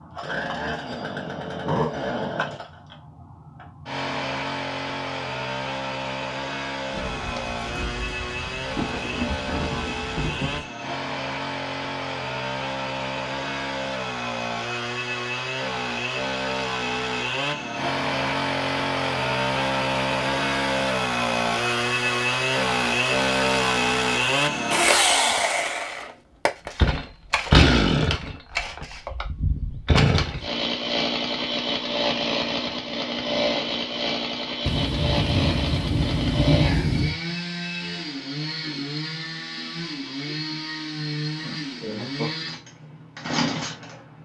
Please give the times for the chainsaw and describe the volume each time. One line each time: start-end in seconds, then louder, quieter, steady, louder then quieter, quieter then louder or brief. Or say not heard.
0.0-44.2 louder then quieter.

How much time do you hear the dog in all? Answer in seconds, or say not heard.
not heard.